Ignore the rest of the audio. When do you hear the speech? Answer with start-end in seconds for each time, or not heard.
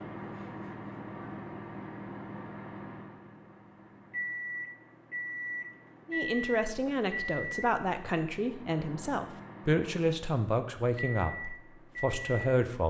6.0-12.8.